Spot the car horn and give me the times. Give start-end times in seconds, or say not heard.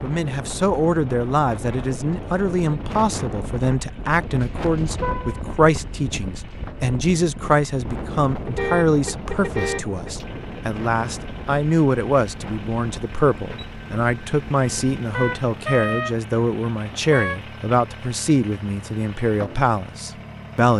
5.0-5.4, 8.4-10.2, 15.1-17.4.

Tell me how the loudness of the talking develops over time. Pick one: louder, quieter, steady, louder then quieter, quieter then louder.
steady.